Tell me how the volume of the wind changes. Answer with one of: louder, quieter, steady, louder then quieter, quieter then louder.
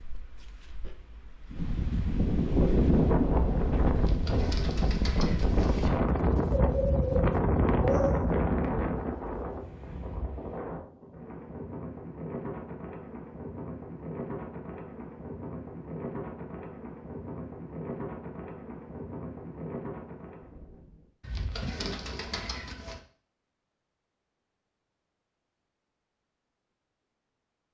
quieter.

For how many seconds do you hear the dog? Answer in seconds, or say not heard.
2 s.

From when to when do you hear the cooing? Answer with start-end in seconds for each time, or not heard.
4.0-5.9, 21.2-23.0.